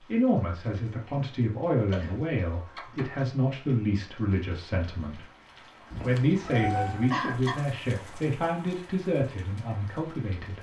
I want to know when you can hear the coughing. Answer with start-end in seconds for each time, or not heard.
1.9-3.0, 7.1-7.6.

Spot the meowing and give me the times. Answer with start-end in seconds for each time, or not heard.
2.5-3.2, 5.9-7.2.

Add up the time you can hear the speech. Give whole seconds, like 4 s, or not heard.
10 s.